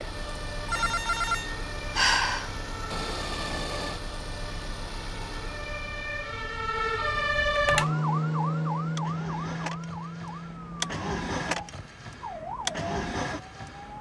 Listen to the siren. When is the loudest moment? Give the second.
8 s.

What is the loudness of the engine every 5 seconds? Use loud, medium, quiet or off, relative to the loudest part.
loud, medium, loud.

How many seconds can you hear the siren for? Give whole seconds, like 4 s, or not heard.
14 s.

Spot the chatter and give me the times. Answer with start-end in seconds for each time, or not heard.
not heard.